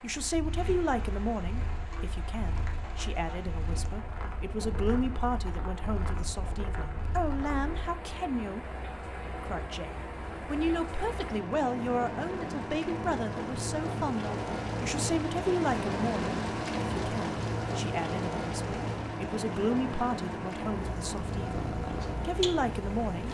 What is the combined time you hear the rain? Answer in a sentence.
The rain can be heard for 23 seconds in total.